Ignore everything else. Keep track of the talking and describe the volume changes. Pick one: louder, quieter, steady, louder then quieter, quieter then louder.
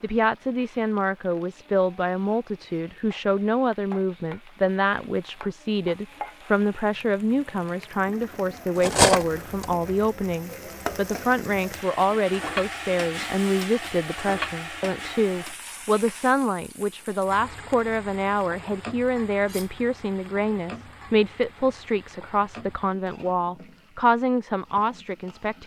steady.